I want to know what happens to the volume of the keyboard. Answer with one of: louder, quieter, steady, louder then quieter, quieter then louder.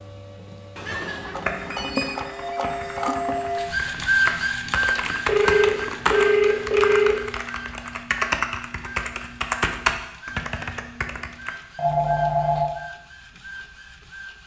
louder.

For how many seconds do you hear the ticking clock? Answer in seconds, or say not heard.
not heard.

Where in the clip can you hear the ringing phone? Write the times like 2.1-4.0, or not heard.
0.8-2.1, 5.2-7.2, 11.8-12.8.